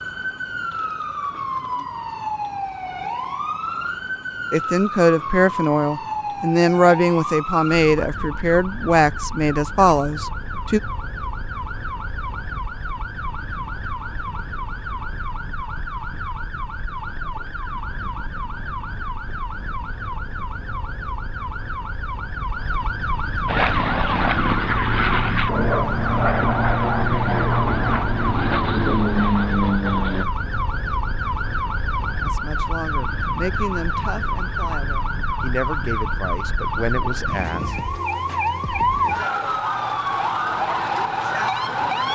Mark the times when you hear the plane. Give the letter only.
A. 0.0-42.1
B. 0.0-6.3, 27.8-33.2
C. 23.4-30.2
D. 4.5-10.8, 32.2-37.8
C.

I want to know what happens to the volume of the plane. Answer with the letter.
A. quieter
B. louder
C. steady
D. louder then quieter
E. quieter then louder
C.